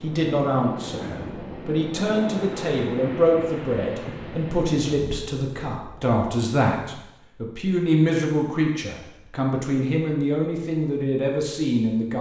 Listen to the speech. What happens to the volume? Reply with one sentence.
The loudness of the speech stays about the same.